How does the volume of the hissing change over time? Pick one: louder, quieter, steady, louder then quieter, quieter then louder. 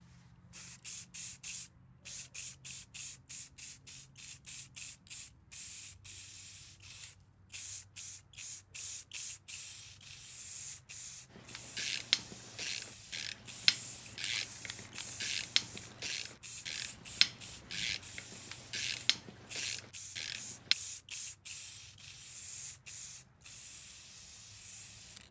steady.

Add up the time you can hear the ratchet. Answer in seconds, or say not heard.
9 s.